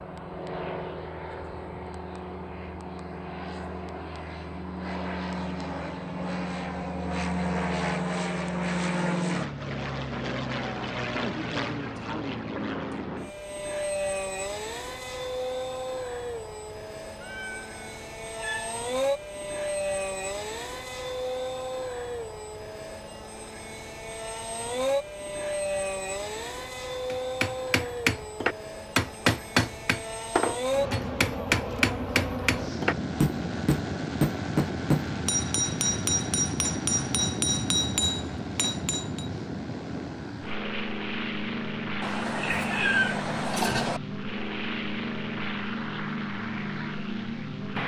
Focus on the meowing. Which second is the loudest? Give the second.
43 s.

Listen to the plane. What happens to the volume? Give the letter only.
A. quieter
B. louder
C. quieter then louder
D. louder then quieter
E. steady
E.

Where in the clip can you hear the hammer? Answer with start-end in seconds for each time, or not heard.
27.1-39.2.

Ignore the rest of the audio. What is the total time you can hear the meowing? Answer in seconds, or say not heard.
4 s.